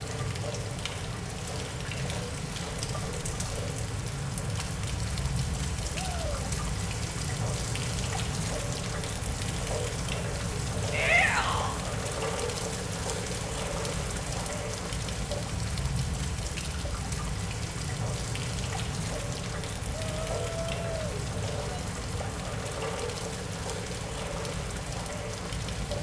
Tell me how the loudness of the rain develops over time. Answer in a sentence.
The volume of the rain stays about the same.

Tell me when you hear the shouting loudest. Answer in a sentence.
The loudest moment of the shouting is at 11 seconds.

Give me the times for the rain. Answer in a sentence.
You can hear the rain from 0.0 to 25.9 s.